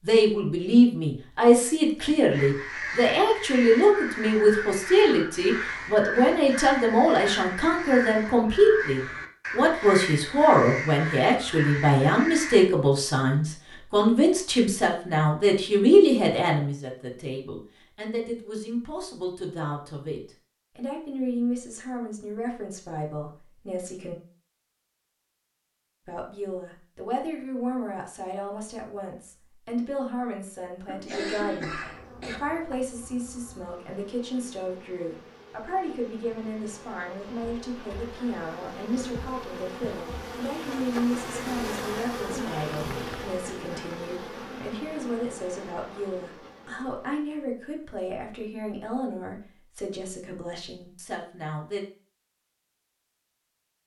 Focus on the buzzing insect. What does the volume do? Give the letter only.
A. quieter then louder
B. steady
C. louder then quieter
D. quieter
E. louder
C.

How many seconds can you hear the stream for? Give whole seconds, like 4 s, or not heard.
not heard.